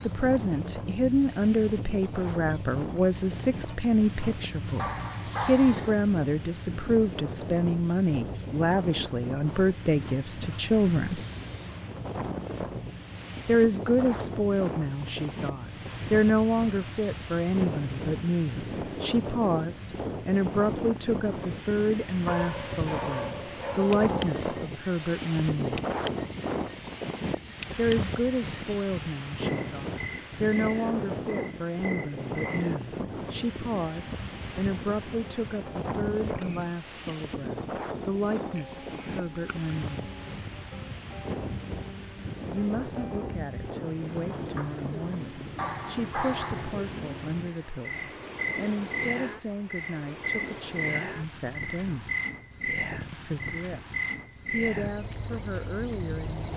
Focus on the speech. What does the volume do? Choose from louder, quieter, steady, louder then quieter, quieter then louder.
quieter.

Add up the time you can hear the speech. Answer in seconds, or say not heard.
49 s.